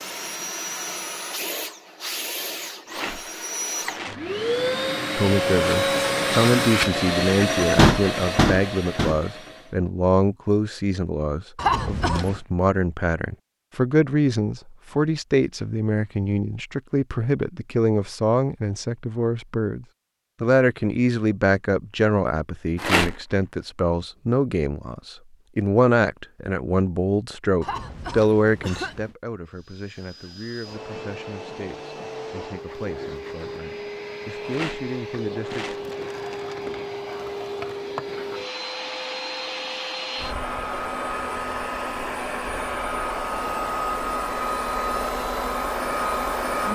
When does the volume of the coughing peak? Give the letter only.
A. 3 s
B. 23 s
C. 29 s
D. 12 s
D.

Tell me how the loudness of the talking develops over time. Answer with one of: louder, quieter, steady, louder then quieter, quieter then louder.
quieter.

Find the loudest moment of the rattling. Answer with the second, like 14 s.
23 s.